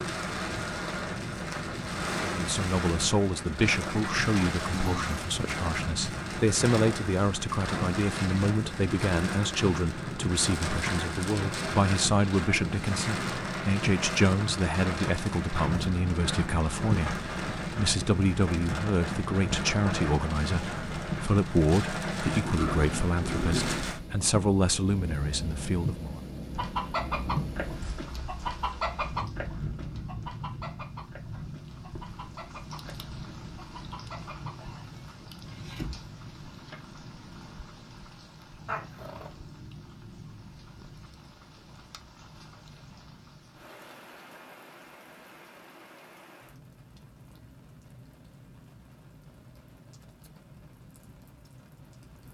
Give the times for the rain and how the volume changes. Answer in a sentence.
You can hear the rain from 0.0 to 52.3 s, getting quieter.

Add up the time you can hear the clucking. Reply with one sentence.
The clucking can be heard for 10 seconds in total.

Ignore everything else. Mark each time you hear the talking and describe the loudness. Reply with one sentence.
The talking can be heard from 2.2 to 26.2 s, at a steady volume.